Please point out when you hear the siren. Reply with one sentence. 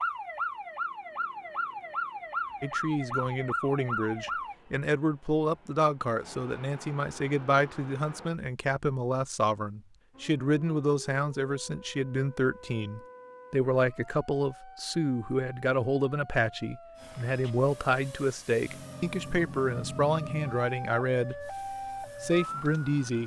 The siren can be heard from 0.0 to 4.5 s and from 10.1 to 23.2 s.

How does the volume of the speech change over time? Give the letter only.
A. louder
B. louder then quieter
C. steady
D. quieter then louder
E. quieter
C.